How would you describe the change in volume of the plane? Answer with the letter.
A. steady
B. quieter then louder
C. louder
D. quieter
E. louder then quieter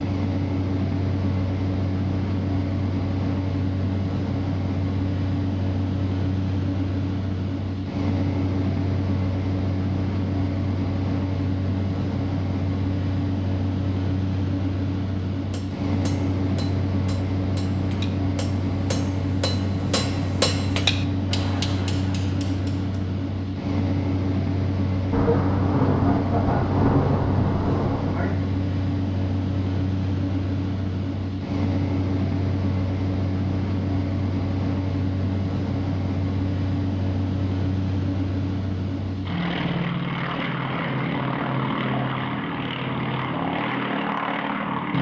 A.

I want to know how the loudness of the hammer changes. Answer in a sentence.
The volume of the hammer goes up, then down.